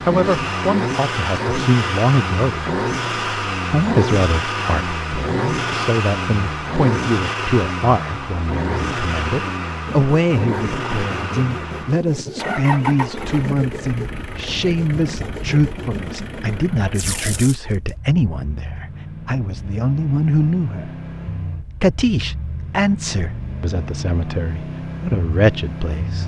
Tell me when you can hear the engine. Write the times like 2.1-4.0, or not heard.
0.0-26.2.